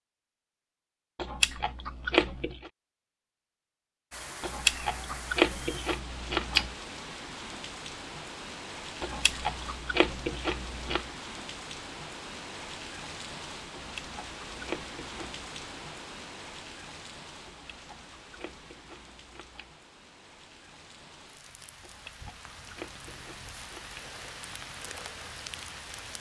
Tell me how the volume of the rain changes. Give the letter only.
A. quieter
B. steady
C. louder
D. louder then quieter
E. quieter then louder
E.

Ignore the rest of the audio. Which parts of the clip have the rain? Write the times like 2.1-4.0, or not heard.
4.1-26.1.